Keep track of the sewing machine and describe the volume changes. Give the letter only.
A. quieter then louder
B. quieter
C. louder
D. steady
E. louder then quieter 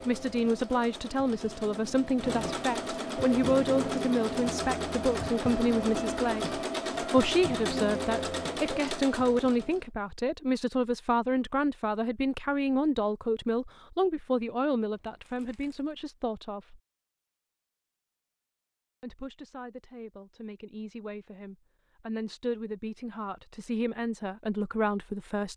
C.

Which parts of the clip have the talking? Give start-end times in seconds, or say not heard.
0.1-16.8, 19.0-25.5.